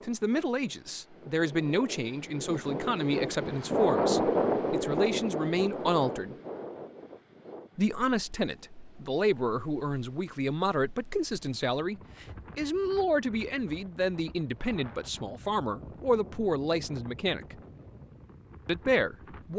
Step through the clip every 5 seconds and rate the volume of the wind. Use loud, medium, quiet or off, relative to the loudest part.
loud, medium, quiet, quiet.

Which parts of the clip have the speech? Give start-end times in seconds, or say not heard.
0.0-6.3, 7.8-17.6, 18.6-19.5.